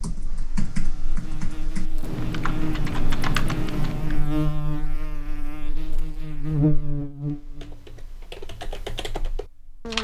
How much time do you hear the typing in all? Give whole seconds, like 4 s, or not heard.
7 s.